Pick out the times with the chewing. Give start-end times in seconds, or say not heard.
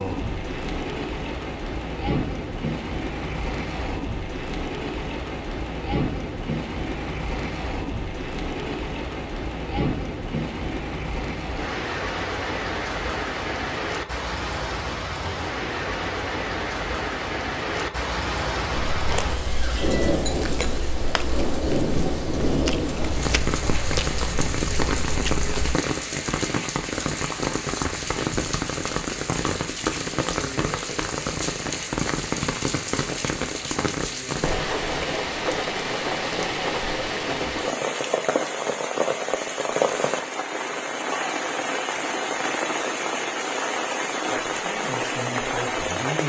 18.9-25.8.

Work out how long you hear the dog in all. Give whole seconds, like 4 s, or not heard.
not heard.